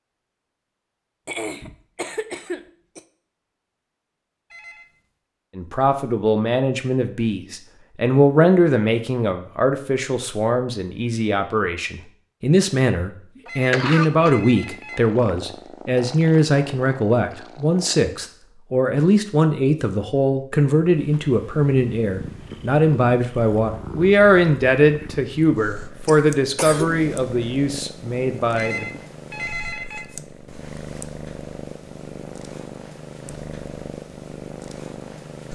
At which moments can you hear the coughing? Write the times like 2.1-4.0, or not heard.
1.2-3.0, 13.4-14.3, 26.1-27.1.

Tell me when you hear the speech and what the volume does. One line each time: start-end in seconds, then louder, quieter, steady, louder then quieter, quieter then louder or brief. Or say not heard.
5.5-29.0 steady.